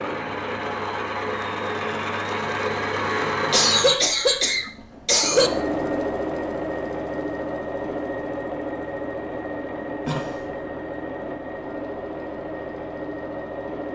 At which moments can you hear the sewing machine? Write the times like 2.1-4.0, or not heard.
0.0-13.9.